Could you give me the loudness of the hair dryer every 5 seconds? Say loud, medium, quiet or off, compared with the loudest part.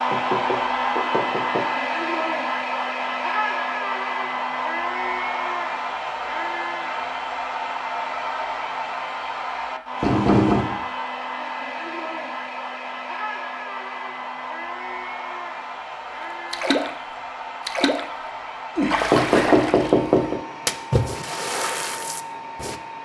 loud, loud, medium, medium, medium.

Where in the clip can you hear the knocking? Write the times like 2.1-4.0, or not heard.
0.1-1.6, 10.0-10.8, 18.8-20.4.